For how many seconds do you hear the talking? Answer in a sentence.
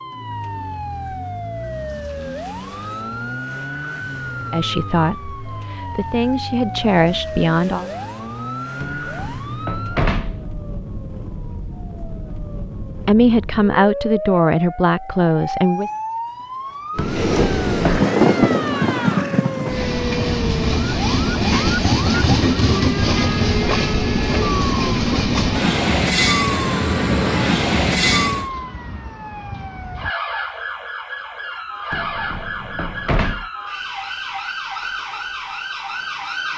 The talking can be heard for 6 seconds in total.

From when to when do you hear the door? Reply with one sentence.
The door can be heard from 8.8 to 10.4 s, from 16.9 to 18.1 s and from 31.9 to 33.5 s.